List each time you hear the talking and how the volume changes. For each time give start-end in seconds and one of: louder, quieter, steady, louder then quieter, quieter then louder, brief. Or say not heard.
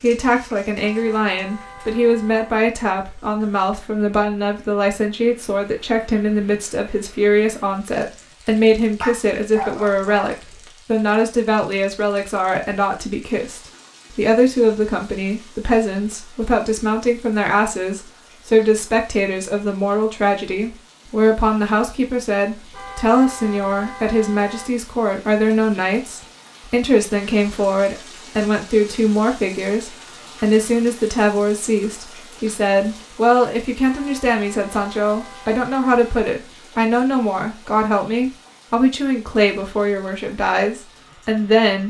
0.0-41.8 steady.